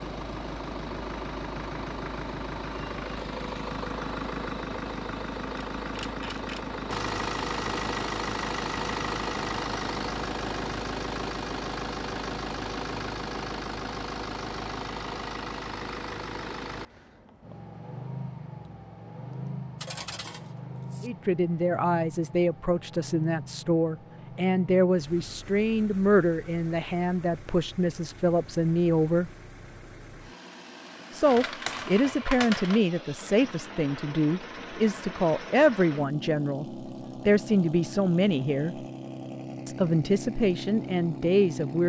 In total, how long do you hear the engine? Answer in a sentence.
You can hear the engine for 42 seconds altogether.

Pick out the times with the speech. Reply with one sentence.
The speech can be heard from 21.0 to 29.3 s, from 31.1 to 38.8 s and from 39.6 to 41.8 s.